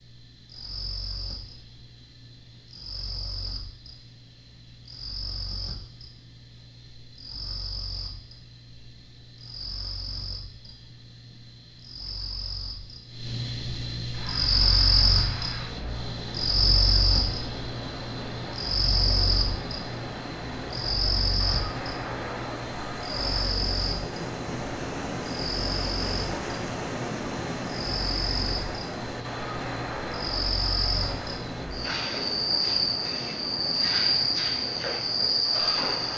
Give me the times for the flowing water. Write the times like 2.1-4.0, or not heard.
14.1-36.1.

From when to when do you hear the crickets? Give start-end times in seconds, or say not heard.
0.0-36.1.